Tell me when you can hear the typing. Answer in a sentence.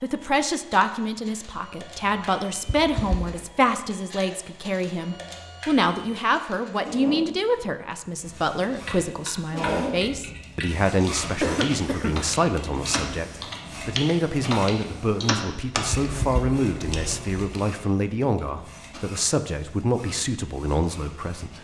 The typing can be heard from 8.8 to 17.6 s.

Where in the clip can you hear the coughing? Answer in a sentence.
The coughing can be heard from 2.6 to 3.5 s, from 11.4 to 12.2 s and from 16.0 to 16.4 s.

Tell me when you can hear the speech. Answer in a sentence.
You can hear the speech from 0.0 to 21.5 s.